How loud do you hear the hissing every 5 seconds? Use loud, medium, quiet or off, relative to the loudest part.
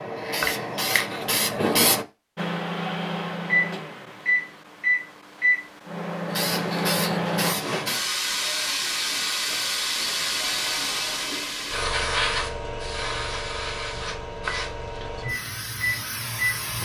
loud, loud, loud, medium.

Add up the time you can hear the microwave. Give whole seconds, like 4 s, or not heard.
8 s.